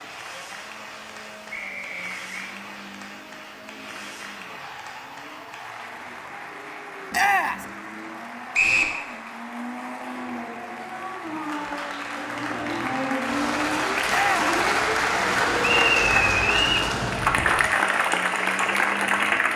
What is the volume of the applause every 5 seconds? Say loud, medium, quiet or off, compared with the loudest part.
quiet, quiet, medium, loud.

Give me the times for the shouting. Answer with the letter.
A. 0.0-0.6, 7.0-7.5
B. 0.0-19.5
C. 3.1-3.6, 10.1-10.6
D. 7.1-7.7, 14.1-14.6
D.